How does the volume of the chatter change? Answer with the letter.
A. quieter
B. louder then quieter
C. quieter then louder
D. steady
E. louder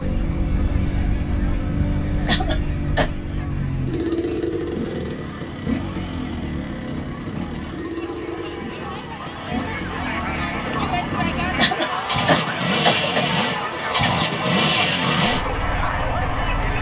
E.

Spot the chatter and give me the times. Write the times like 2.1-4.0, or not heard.
0.0-16.7.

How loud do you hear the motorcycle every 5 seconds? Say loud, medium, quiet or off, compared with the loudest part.
loud, medium, loud, loud.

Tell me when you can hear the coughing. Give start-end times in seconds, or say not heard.
2.2-3.0, 11.6-13.2.